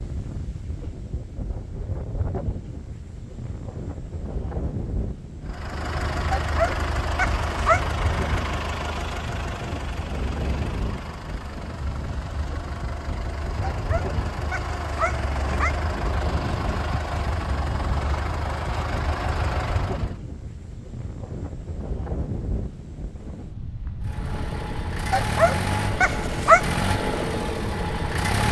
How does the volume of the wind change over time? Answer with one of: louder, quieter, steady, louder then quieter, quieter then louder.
steady.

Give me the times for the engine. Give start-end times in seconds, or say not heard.
5.5-20.1, 24.0-28.4.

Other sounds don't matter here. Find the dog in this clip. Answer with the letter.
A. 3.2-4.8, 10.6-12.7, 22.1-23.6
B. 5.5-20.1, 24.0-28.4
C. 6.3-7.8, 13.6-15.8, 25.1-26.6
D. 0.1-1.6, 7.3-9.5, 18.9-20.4
C.